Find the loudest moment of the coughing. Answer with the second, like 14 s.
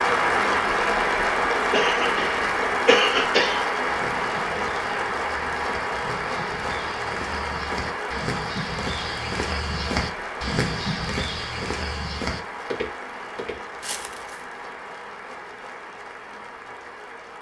3 s.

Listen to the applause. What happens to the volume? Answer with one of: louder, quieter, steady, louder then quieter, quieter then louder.
quieter.